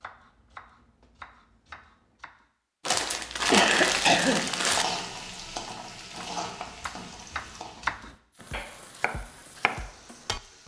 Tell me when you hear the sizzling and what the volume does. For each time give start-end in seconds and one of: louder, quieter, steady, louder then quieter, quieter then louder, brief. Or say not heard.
3.6-10.6 quieter.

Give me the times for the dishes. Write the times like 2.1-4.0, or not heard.
not heard.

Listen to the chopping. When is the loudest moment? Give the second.
8 s.